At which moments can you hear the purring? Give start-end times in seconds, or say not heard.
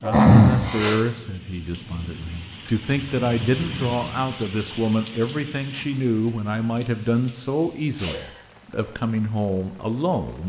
not heard.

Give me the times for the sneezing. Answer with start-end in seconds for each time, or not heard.
0.0-1.0, 6.8-8.4.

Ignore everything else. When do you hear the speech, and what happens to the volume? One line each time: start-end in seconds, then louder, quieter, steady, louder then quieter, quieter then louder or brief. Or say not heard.
0.0-10.4 steady.